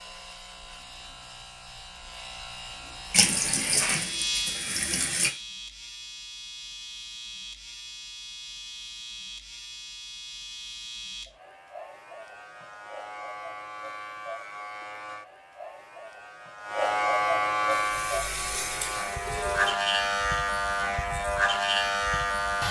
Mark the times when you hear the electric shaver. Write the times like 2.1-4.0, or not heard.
0.0-22.6.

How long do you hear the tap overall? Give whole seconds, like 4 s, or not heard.
4 s.